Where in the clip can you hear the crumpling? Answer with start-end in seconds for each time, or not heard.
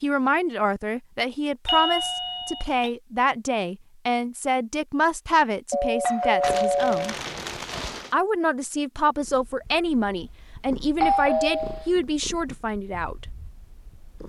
6.4-8.2.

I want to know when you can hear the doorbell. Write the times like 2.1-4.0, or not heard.
1.6-2.9, 5.7-7.2, 11.0-11.9.